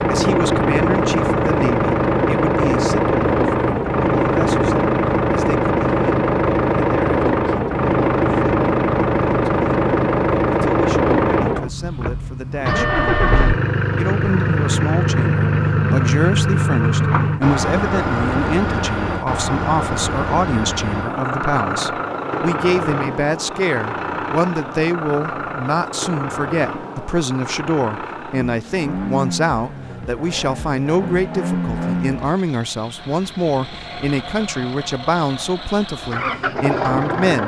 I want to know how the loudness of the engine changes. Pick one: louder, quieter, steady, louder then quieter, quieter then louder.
quieter.